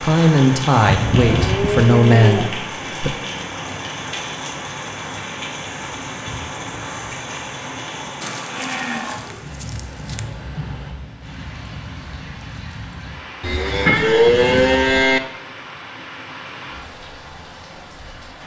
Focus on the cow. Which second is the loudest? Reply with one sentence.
The loudest moment of the cow is at 14 seconds.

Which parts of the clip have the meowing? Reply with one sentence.
The meowing can be heard from 13.8 to 15.0 s.